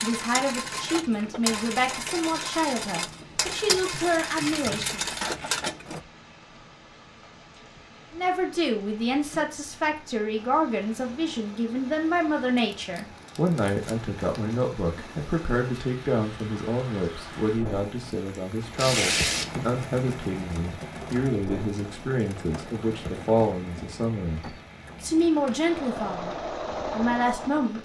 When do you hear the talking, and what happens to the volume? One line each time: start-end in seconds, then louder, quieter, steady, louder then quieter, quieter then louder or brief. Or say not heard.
0.0-5.0 steady
8.1-27.8 steady.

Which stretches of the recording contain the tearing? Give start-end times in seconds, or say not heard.
3.9-5.6, 12.6-14.6, 18.8-19.5.